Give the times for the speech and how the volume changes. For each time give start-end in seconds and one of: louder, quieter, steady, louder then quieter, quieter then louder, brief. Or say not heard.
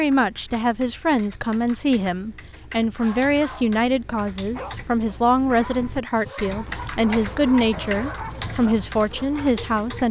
0.0-10.0 steady.